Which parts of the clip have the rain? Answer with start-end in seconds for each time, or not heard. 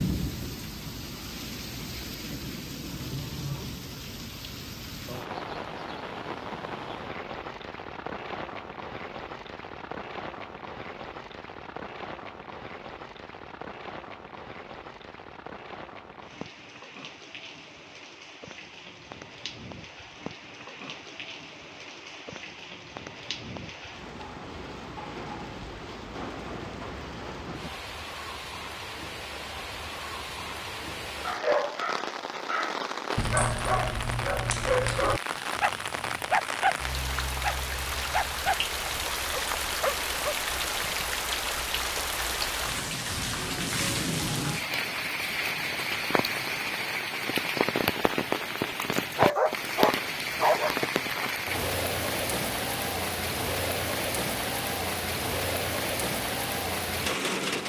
0.0-57.6.